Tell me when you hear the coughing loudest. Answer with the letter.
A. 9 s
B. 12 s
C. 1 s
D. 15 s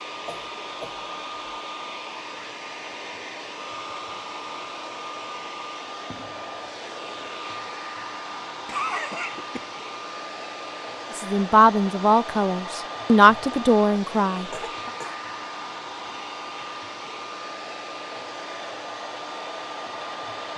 A.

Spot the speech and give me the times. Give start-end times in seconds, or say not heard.
11.2-14.9.